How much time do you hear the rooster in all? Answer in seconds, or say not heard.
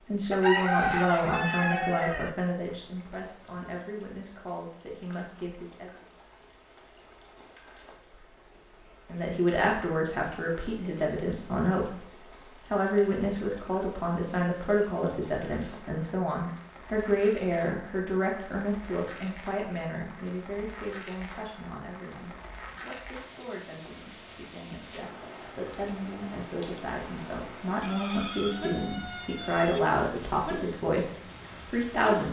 4 s.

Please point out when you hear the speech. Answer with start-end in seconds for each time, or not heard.
0.1-6.0, 9.1-12.1, 12.7-32.2.